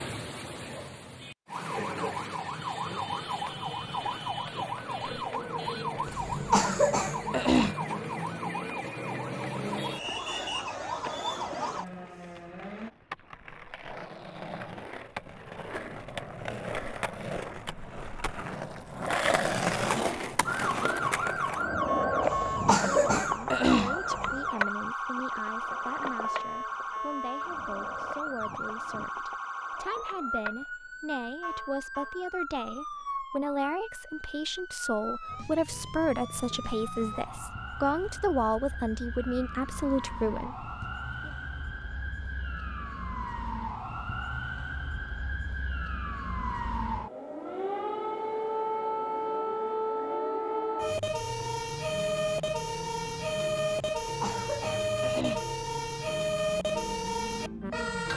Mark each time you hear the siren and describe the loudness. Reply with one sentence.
The siren can be heard from 0.0 to 12.9 s, at a steady volume; and from 20.4 to 58.1 s, getting quieter then louder.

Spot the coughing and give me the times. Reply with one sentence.
The coughing can be heard from 6.0 to 7.8 s, from 22.2 to 24.4 s and from 54.0 to 55.5 s.